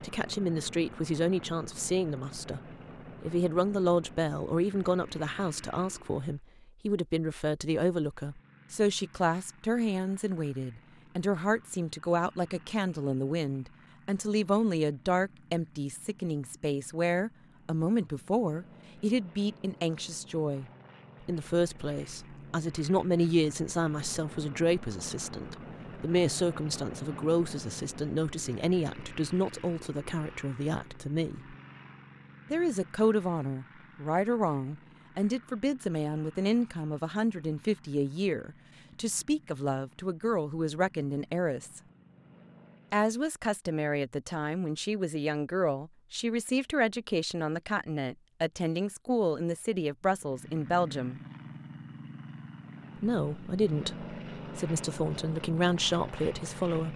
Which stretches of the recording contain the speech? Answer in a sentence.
The speech can be heard from 0.0 to 2.6 s, from 3.2 to 31.6 s, from 32.5 to 41.8 s, from 42.9 to 51.2 s and from 53.0 to 56.9 s.